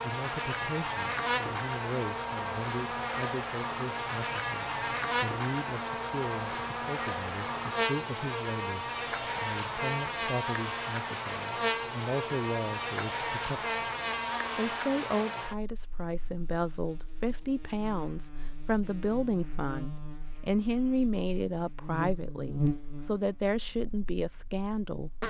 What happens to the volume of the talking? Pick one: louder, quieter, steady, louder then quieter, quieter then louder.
louder.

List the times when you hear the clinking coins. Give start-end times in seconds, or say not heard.
not heard.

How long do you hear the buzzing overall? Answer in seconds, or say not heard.
25 s.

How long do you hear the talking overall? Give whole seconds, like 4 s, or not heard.
24 s.